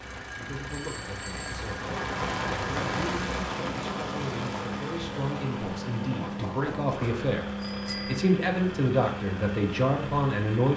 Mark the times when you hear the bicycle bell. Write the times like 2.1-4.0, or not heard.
0.7-1.6, 6.1-8.2.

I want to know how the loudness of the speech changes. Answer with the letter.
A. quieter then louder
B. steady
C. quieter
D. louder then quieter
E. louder
E.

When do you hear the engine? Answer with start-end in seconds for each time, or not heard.
0.0-10.7.